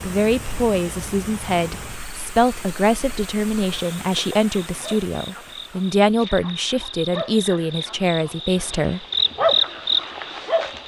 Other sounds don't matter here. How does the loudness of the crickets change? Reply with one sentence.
The volume of the crickets goes up.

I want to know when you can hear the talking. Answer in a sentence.
You can hear the talking from 0.0 to 9.1 s.